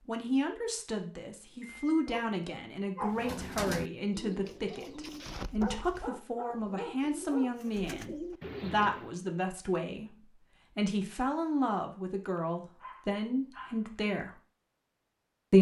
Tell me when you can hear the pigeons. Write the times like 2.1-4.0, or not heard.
3.0-9.2.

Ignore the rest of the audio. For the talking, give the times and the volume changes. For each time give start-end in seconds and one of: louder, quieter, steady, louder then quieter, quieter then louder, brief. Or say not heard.
0.1-14.3 steady.